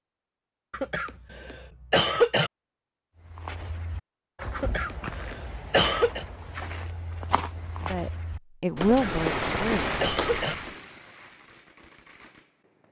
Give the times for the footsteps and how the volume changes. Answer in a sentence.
The footsteps can be heard from 3.2 to 10.8 s, getting louder.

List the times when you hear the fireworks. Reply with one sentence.
You can hear the fireworks from 8.8 to 12.8 s.